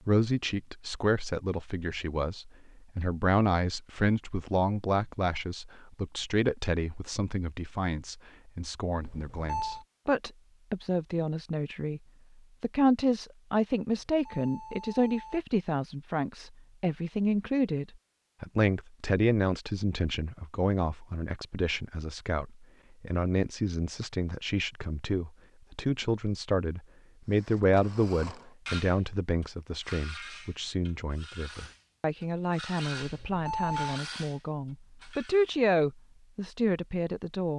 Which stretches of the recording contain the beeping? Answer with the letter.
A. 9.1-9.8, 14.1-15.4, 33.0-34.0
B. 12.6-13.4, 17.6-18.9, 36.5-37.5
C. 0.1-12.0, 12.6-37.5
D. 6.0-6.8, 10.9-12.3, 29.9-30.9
A.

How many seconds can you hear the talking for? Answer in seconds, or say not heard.
37 s.